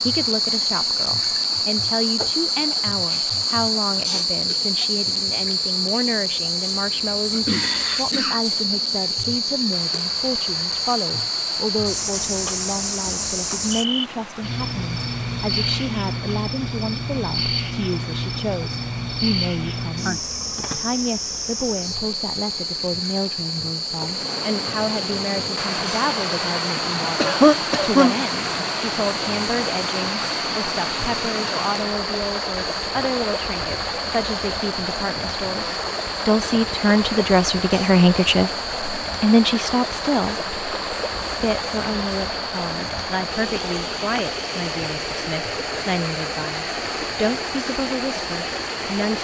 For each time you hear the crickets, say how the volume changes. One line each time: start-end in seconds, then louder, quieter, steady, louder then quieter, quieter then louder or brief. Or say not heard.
0.0-49.1 quieter.